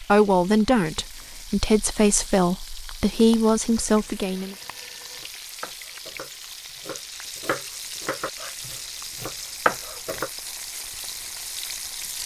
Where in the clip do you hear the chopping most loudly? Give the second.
10 s.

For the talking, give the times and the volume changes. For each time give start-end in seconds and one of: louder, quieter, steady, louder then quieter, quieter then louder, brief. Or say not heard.
0.0-4.5 steady.